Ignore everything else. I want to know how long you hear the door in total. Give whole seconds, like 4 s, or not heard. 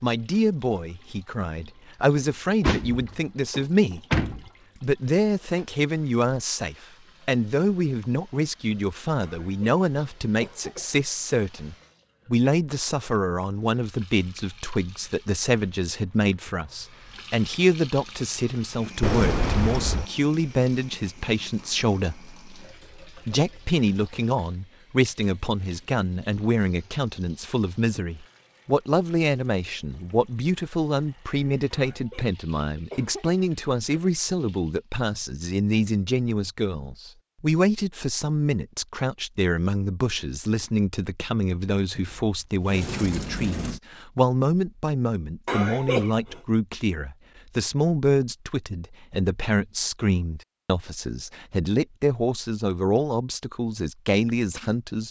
5 s.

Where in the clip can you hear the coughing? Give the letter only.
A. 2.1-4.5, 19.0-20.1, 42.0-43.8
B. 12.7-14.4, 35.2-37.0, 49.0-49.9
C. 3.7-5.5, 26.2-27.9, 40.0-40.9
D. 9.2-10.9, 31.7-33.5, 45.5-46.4
D.